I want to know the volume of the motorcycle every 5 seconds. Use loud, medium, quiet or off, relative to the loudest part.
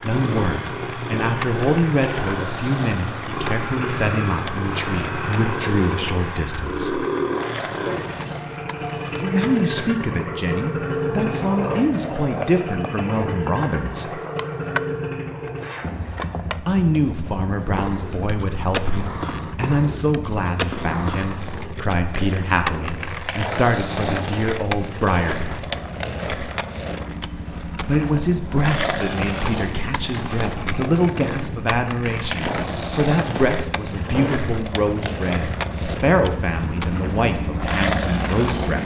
loud, loud, loud, medium, medium, medium, medium, loud.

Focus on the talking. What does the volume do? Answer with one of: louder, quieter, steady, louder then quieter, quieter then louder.
steady.